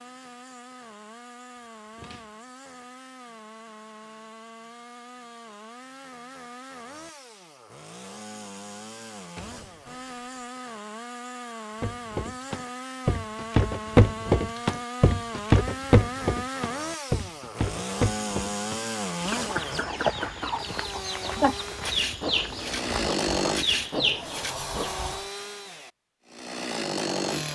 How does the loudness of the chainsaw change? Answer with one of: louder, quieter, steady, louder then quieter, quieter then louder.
louder.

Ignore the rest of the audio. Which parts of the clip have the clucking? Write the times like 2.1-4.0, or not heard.
19.1-25.1.